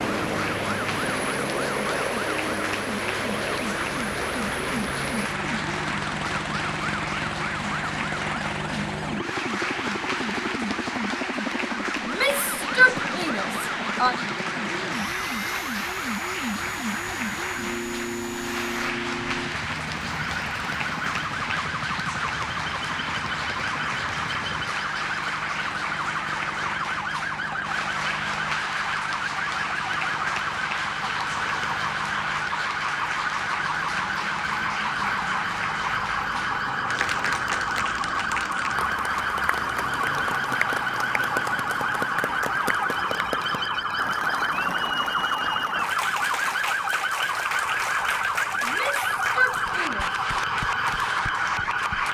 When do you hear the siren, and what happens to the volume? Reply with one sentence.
You can hear the siren from 0.2 to 52.0 s, getting louder.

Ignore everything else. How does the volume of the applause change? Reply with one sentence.
The loudness of the applause stays about the same.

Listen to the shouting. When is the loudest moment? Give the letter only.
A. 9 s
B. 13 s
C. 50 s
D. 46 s
B.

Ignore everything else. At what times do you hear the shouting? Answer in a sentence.
The shouting can be heard from 12.0 to 14.2 s and from 48.6 to 50.1 s.